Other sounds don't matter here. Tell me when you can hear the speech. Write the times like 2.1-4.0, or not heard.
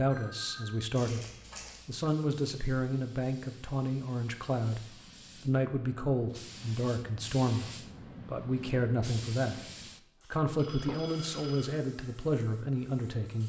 0.0-1.2, 1.9-9.6, 10.3-13.4.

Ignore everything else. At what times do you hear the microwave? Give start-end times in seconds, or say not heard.
not heard.